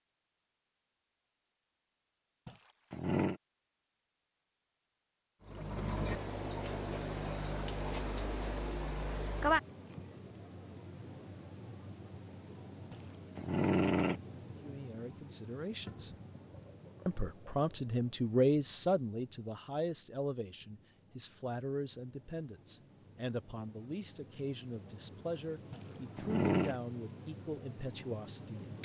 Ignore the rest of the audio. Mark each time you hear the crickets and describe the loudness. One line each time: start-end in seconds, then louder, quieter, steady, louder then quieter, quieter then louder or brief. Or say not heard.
5.5-28.8 quieter then louder.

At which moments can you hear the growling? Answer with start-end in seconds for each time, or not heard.
2.5-3.4, 12.9-14.2, 25.7-26.8.